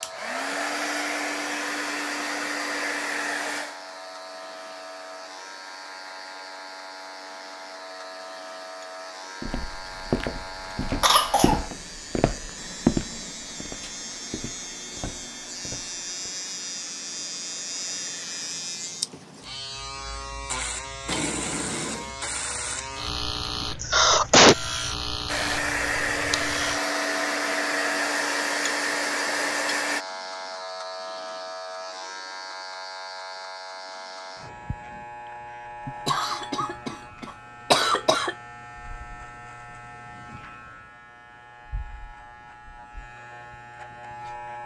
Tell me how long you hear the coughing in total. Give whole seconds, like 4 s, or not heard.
4 s.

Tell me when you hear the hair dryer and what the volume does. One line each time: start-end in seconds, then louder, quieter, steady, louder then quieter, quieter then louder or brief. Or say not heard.
0.0-19.3 quieter
25.2-30.1 steady.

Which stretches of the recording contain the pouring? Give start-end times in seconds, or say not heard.
not heard.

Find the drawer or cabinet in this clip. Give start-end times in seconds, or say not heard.
21.1-22.1.